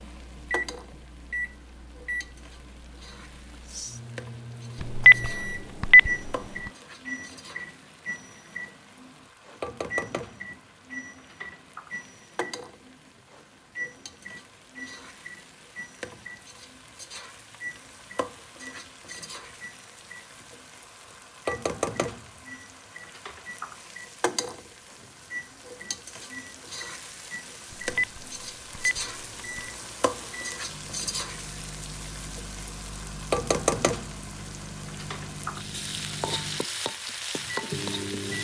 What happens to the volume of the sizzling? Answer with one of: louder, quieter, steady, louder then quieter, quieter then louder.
louder.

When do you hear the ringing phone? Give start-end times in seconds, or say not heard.
4.8-6.3, 27.7-29.7.